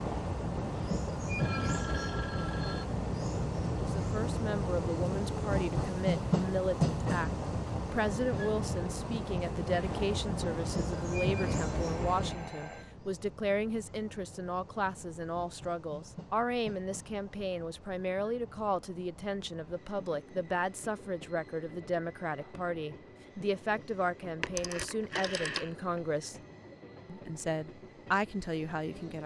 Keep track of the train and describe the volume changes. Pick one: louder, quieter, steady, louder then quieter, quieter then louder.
quieter.